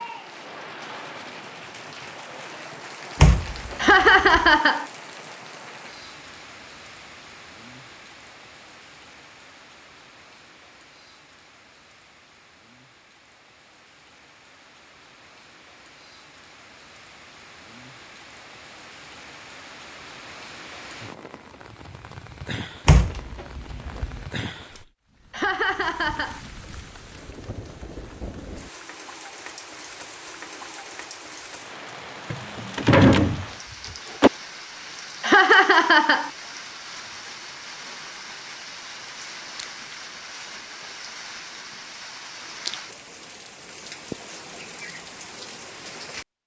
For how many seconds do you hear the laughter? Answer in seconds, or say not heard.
3 s.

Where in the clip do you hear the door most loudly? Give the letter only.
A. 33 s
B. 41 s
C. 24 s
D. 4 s
A.